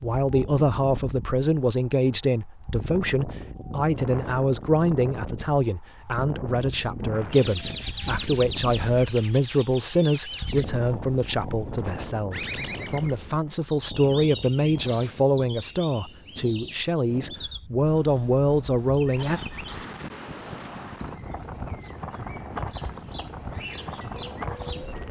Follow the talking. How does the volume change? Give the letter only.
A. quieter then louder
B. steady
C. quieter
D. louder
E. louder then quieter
B.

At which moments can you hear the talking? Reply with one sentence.
You can hear the talking from 0.0 to 19.4 s.